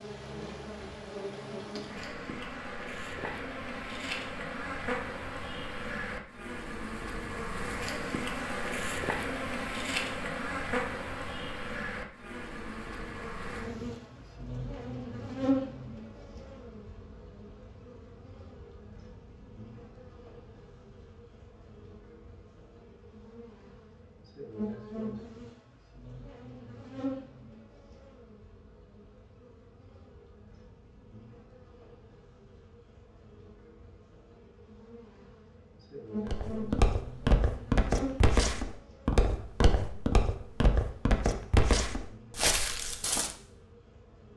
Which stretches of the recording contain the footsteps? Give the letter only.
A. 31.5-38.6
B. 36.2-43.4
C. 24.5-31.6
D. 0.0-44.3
B.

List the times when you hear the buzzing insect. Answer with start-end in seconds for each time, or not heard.
0.0-44.3.